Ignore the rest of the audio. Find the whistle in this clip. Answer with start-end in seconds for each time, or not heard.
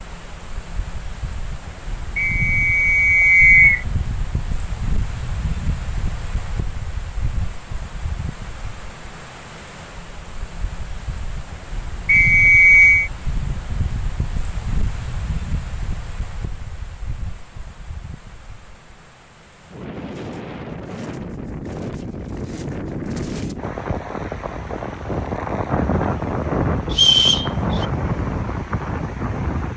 2.1-3.9, 12.1-13.1, 26.9-27.9.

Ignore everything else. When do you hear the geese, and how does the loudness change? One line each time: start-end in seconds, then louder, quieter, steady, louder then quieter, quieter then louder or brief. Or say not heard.
not heard.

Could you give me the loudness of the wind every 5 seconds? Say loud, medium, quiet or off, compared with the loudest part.
medium, medium, medium, quiet, medium, loud.